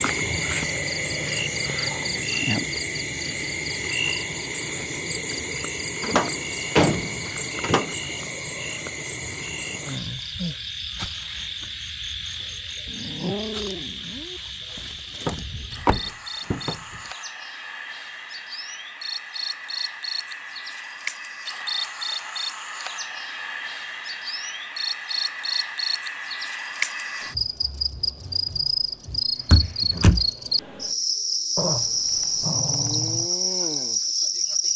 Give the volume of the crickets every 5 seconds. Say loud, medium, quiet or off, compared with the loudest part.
loud, medium, medium, medium, medium, loud, loud.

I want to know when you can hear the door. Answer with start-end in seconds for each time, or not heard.
6.0-8.0, 15.2-16.8, 29.5-30.3.